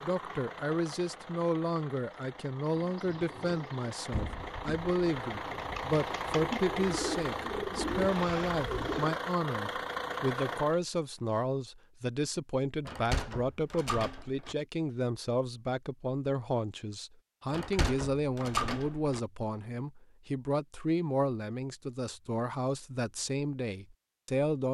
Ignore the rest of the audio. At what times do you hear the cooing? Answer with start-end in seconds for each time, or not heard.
2.8-9.2.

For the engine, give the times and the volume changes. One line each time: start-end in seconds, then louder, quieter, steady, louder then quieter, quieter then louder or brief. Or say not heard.
0.0-10.8 louder.